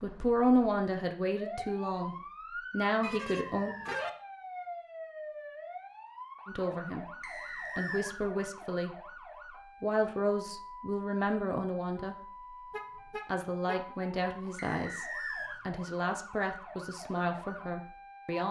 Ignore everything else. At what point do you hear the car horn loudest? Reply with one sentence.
The volume of the car horn peaks at 4 seconds.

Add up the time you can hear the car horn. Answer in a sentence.
You can hear the car horn for 2 seconds altogether.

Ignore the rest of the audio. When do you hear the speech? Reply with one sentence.
You can hear the speech from 0.0 to 3.8 s and from 6.5 to 18.4 s.